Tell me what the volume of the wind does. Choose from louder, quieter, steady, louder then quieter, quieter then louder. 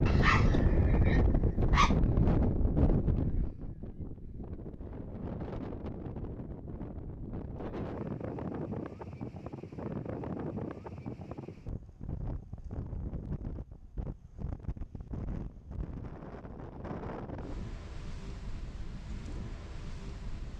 quieter.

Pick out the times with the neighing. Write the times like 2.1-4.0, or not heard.
not heard.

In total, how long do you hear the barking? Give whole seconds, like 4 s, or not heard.
2 s.